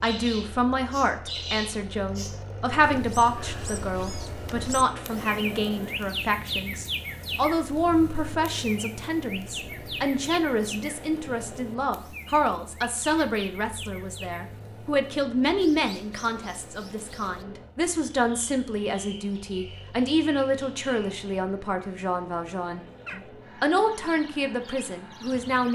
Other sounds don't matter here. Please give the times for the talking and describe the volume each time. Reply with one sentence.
You can hear the talking from 0.0 to 25.7 s, at a steady volume.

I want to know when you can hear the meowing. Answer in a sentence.
You can't hear the meowing here.